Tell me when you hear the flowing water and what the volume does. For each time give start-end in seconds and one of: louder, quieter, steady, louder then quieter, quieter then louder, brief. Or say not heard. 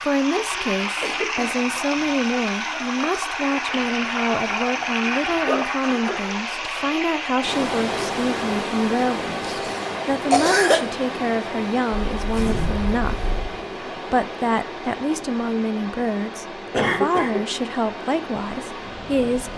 0.0-19.5 quieter.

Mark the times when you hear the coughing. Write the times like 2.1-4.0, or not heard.
0.9-1.6, 9.4-10.8, 16.7-17.4.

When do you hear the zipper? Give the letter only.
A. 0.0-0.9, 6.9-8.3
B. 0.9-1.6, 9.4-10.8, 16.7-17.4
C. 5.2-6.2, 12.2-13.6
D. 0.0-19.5
C.